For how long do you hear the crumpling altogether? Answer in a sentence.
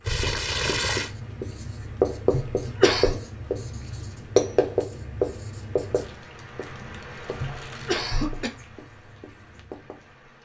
The crumpling can be heard for 3 seconds in total.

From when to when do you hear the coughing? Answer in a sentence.
You can hear the coughing from 2.3 to 3.2 s and from 7.3 to 8.5 s.